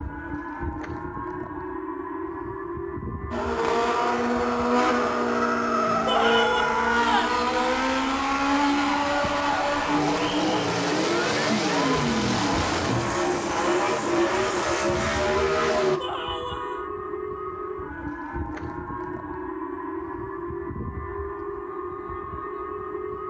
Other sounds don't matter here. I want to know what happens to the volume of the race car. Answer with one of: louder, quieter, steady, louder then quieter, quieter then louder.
steady.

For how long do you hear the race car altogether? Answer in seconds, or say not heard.
13 s.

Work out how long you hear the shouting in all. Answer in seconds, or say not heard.
2 s.